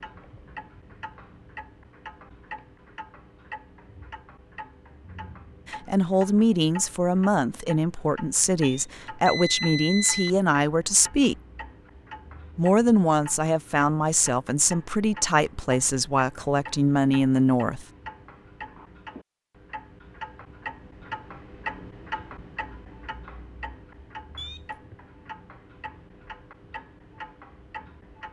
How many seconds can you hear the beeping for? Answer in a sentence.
You can hear the beeping for 2 seconds altogether.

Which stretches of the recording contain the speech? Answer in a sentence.
You can hear the speech from 5.7 to 11.3 s and from 12.6 to 17.9 s.